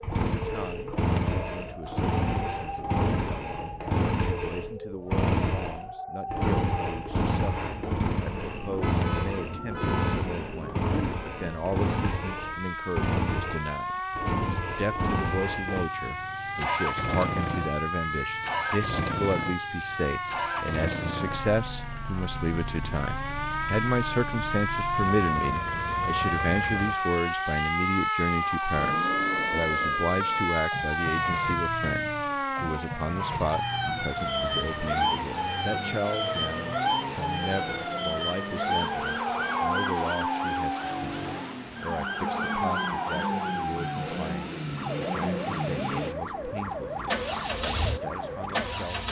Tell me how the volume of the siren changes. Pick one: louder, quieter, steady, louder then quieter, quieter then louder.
louder.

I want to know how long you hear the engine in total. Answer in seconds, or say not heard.
49 s.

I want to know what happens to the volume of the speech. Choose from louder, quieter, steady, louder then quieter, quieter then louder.
louder then quieter.